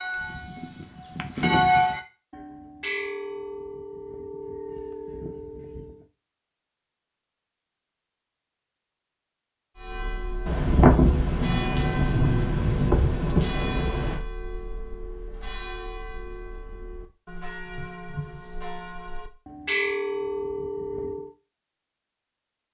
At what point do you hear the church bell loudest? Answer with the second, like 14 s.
2 s.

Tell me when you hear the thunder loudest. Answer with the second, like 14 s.
11 s.